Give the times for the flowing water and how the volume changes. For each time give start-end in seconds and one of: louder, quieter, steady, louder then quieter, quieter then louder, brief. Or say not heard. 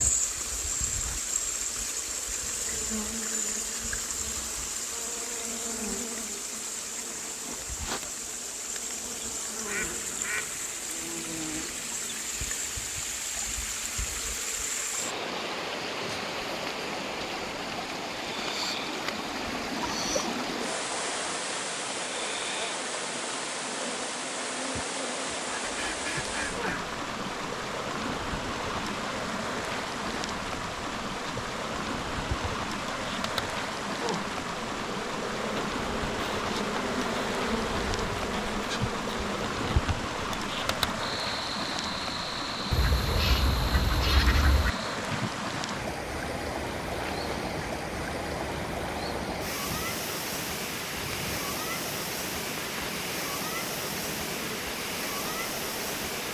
0.0-56.3 steady.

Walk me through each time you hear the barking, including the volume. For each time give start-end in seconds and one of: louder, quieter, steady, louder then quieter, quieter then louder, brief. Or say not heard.
not heard.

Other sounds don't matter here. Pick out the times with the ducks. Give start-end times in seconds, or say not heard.
9.7-10.8, 25.6-26.9, 42.7-44.7.